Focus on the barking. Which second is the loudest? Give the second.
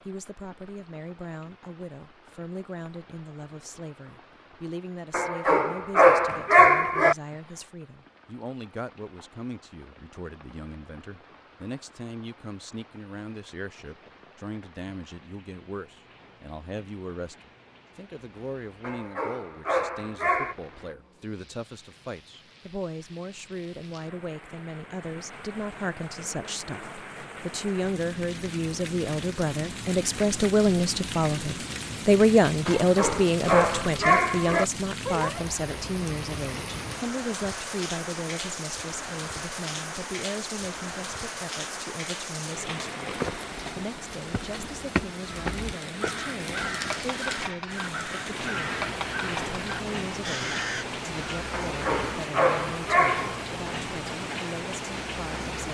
7 s.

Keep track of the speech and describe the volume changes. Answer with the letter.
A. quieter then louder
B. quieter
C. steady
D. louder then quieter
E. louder
D.